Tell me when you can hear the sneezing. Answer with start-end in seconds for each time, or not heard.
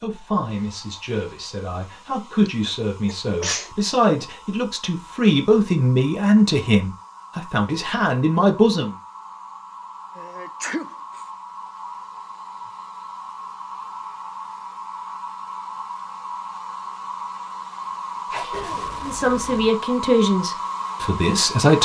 2.5-3.7, 10.2-11.2, 18.3-19.7.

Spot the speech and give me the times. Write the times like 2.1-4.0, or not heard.
0.0-8.9, 19.0-21.8.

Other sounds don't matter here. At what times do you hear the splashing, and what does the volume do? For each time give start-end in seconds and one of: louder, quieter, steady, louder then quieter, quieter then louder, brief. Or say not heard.
not heard.